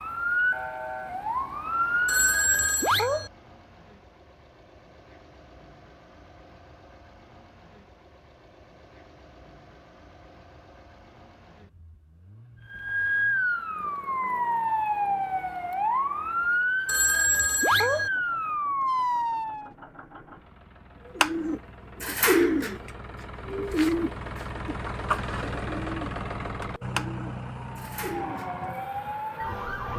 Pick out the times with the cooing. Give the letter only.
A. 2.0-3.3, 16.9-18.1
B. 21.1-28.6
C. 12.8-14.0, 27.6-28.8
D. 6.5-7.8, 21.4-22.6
B.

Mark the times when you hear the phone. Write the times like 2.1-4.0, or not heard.
2.0-3.3, 16.9-18.1.